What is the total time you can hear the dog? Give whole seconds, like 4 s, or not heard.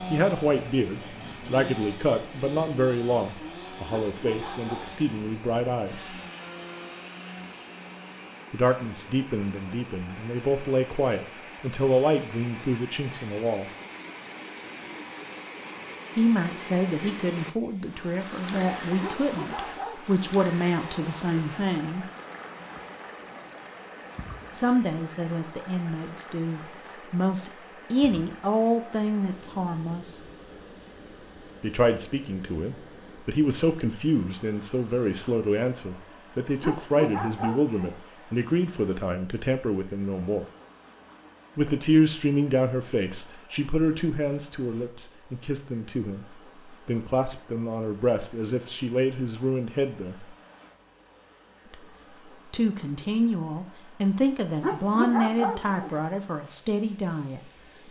5 s.